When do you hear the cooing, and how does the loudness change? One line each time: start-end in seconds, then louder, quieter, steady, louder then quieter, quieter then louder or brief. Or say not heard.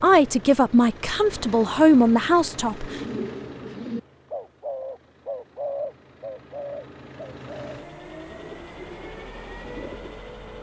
2.8-10.2 quieter.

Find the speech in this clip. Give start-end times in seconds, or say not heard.
0.0-3.0.